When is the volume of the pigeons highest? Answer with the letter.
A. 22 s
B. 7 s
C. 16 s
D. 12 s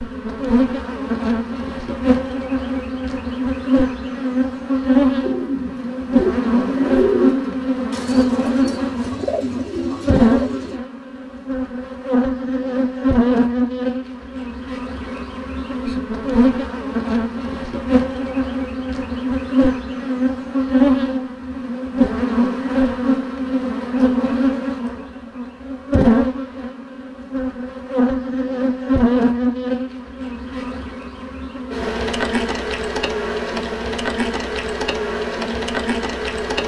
B.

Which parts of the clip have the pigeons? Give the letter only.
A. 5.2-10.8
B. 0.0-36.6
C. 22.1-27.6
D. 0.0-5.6
A.